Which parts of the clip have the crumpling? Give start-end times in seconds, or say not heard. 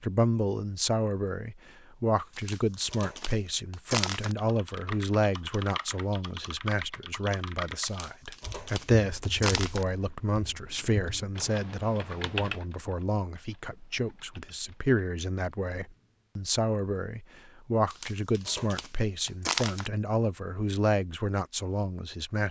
2.4-4.3, 7.8-9.8, 17.9-19.9.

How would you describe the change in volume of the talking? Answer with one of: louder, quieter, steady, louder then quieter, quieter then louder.
steady.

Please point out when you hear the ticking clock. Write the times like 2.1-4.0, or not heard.
not heard.